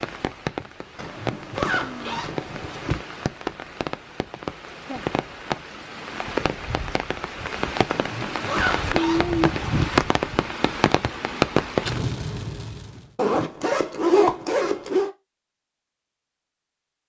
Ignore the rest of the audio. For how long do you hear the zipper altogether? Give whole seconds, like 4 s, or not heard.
6 s.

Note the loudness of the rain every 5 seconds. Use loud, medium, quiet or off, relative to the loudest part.
medium, loud, loud, off.